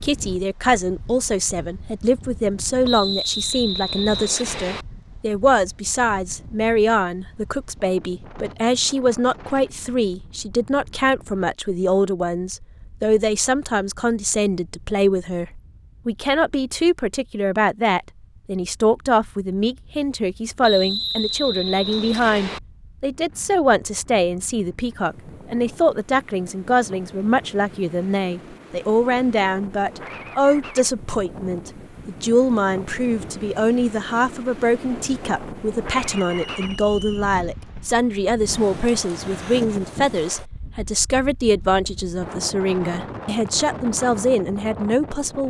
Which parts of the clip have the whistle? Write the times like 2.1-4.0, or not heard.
2.9-4.8, 20.6-22.6, 36.0-37.3.